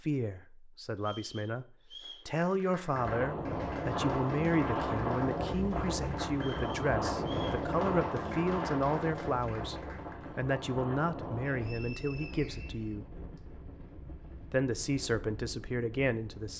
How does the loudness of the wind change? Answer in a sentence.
The loudness of the wind goes down.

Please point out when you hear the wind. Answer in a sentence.
The wind can be heard from 2.9 to 16.5 s.